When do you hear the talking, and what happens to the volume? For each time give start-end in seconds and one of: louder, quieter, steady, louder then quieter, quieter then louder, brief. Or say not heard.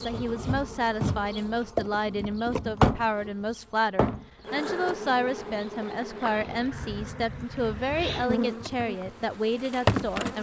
0.0-10.3 steady.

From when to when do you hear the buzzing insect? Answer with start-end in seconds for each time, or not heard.
0.0-10.3.